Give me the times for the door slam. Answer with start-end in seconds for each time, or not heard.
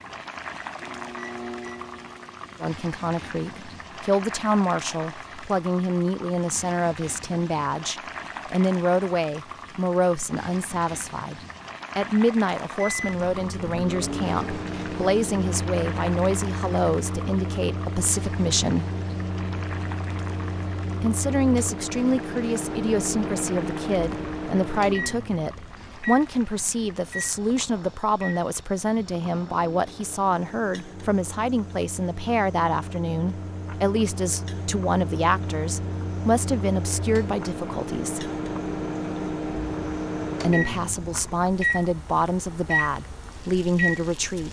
not heard.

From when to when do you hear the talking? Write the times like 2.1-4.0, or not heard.
2.6-18.9, 21.0-38.3, 40.4-44.4.